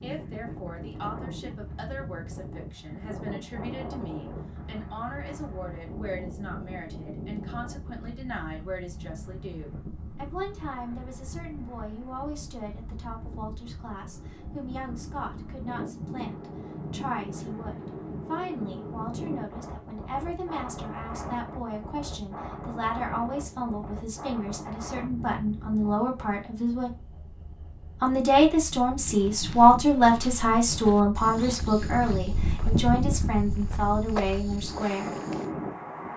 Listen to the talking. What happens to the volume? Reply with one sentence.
The volume of the talking goes up.